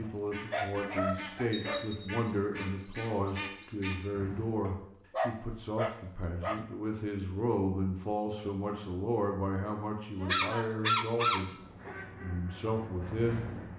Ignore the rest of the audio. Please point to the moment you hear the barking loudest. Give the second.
11 s.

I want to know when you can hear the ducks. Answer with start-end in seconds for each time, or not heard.
0.0-4.5, 11.6-13.7.